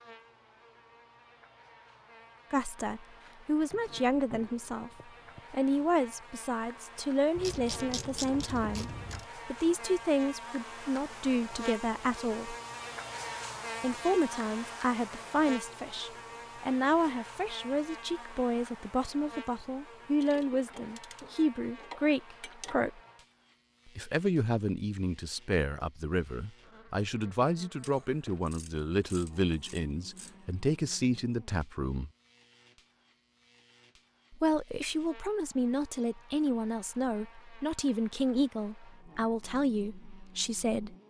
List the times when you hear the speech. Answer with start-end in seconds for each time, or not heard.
2.5-4.9, 5.5-12.6, 13.8-23.0, 23.9-32.1, 34.3-41.0.